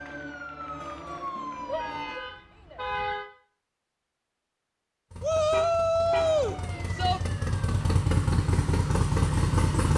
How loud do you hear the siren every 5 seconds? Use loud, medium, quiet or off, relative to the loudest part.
loud, medium.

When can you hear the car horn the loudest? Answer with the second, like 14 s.
3 s.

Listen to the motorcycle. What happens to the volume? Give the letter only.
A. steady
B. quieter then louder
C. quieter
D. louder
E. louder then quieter
D.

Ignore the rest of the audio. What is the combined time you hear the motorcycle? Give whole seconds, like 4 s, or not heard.
5 s.